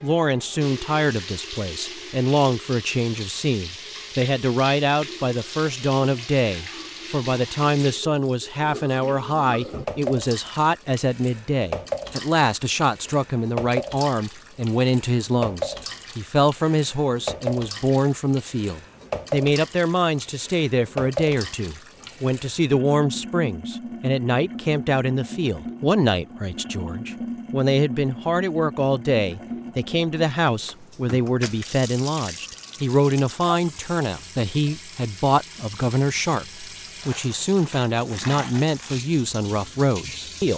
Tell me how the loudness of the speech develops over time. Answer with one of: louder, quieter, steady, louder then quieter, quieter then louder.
steady.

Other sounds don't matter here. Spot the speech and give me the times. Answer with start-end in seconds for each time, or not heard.
0.0-40.5.